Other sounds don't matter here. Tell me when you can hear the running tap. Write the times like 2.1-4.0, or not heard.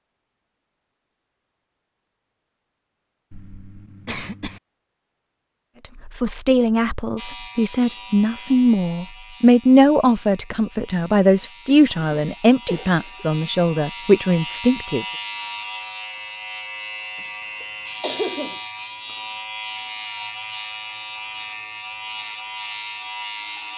not heard.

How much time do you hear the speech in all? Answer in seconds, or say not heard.
9 s.